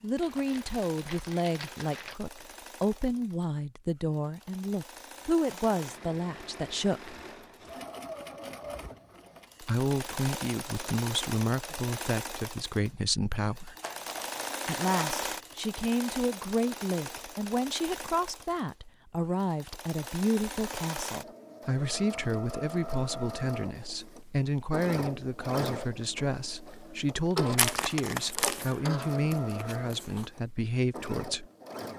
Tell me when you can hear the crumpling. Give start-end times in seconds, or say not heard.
0.1-2.1, 13.8-14.9, 27.6-30.2.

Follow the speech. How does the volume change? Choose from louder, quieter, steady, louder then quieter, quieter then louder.
steady.